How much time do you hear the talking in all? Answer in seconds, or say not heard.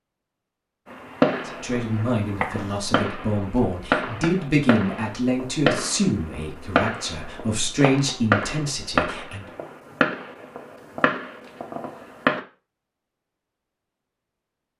8 s.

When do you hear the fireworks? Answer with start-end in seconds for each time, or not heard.
0.9-12.4.